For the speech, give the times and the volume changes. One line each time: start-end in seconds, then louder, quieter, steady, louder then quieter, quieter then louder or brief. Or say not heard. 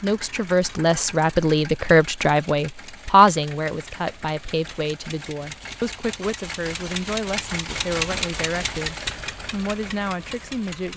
0.0-10.9 quieter.